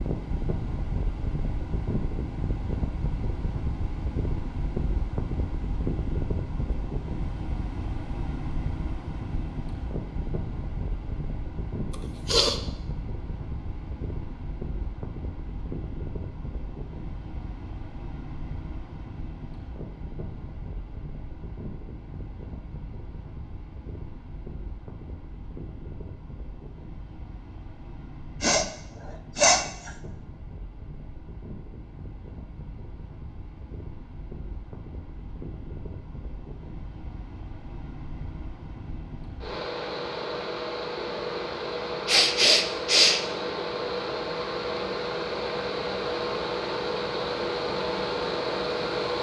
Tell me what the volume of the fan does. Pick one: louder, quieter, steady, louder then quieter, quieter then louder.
quieter then louder.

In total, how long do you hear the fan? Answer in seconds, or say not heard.
49 s.